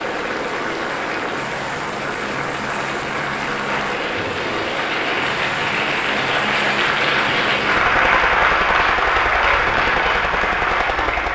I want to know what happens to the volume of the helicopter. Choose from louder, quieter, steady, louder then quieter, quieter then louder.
steady.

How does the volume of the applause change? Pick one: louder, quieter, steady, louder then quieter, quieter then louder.
louder.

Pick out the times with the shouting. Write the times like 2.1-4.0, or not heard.
not heard.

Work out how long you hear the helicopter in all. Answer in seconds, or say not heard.
11 s.